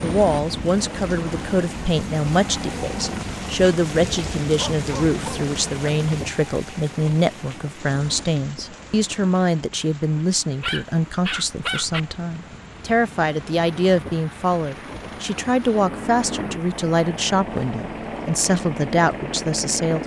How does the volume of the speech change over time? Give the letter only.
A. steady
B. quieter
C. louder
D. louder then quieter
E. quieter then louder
A.